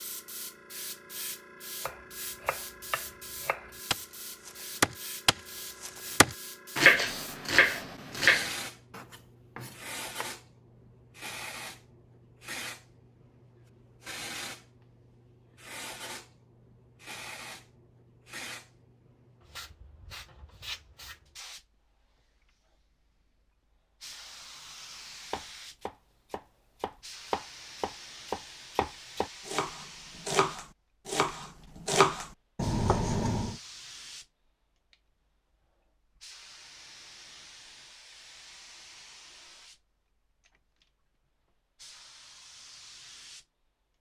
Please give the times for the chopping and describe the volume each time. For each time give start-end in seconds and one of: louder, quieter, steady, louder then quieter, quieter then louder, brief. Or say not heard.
1.8-10.2 louder then quieter
25.3-33.5 louder.